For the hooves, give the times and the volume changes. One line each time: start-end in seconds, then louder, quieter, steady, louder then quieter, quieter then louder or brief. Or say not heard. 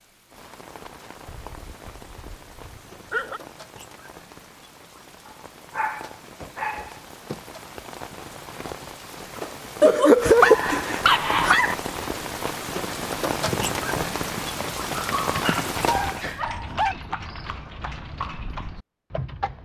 13.4-19.5 steady.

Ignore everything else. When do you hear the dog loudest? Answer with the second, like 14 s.
10 s.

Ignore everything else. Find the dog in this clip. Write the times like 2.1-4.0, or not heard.
1.2-3.4, 5.2-7.0, 9.8-11.8, 14.9-16.9.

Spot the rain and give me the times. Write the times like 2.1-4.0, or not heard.
0.0-16.4.